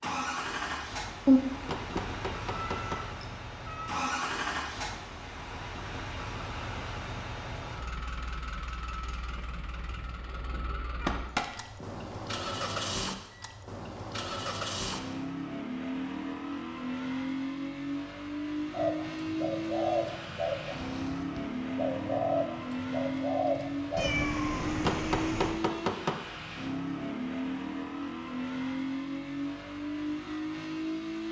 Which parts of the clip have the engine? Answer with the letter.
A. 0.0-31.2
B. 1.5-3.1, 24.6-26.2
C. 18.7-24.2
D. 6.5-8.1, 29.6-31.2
A.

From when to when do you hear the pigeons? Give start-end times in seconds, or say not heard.
18.7-24.2.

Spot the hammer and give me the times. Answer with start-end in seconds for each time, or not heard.
1.5-3.1, 24.6-26.2.